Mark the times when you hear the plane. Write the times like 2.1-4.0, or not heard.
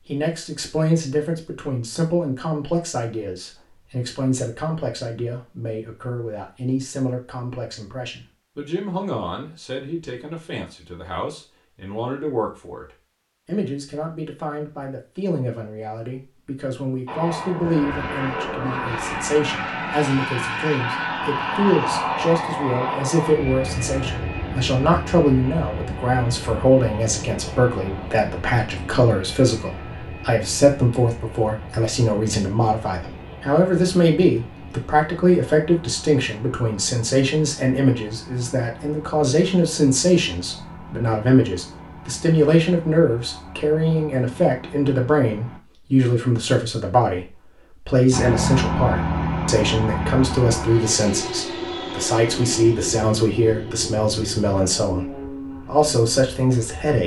17.1-45.6, 48.1-56.9.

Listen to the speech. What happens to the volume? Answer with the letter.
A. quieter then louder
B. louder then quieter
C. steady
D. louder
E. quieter
D.